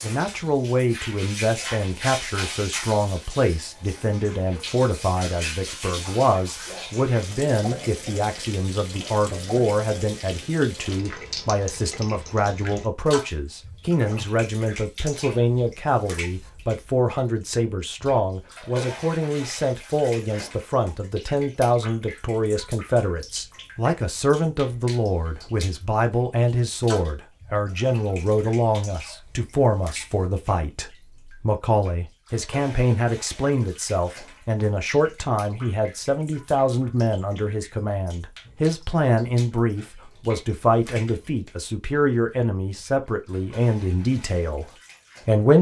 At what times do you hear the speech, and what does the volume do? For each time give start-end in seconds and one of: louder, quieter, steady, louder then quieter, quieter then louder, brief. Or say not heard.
0.0-45.5 steady.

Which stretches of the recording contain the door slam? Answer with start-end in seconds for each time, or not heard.
not heard.